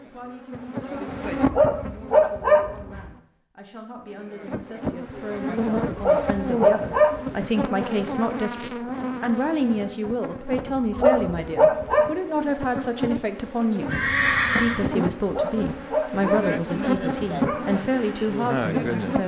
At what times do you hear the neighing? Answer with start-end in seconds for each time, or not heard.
13.8-14.8.